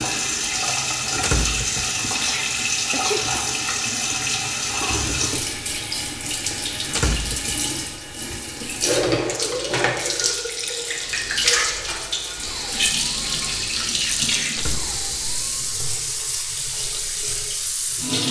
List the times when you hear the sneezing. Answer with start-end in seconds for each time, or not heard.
2.1-3.3.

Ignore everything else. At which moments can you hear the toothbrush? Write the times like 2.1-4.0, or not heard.
not heard.